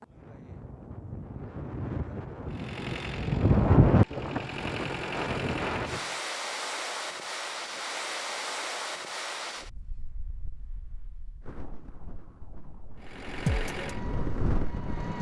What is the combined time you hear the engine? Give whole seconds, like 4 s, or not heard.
6 s.